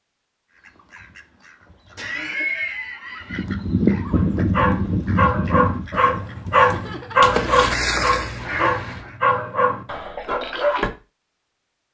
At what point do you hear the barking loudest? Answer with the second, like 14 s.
7 s.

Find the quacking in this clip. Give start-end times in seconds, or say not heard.
0.6-9.2.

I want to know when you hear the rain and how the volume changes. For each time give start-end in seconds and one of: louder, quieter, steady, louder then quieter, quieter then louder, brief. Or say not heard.
not heard.